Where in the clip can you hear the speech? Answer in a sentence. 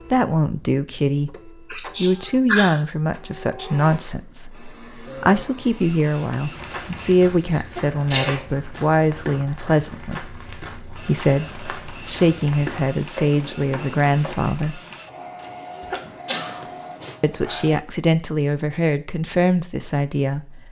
You can hear the speech from 0.1 to 14.8 s and from 17.2 to 20.6 s.